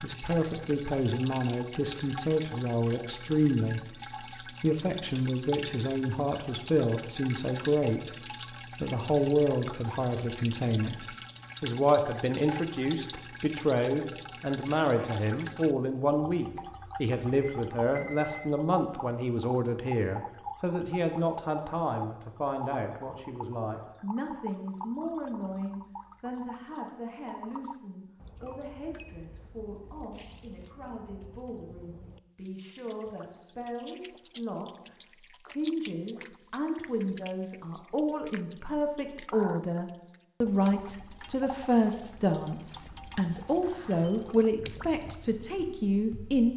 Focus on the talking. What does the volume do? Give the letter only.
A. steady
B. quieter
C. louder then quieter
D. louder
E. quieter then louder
E.